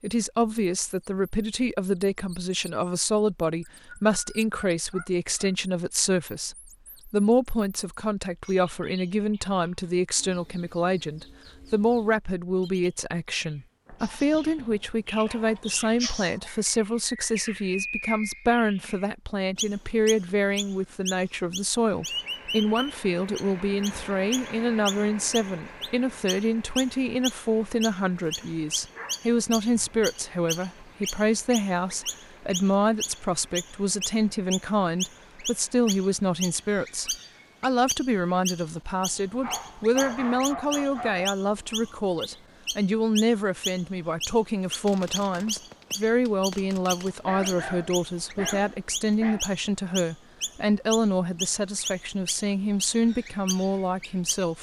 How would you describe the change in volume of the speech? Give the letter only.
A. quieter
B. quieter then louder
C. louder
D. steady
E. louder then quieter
D.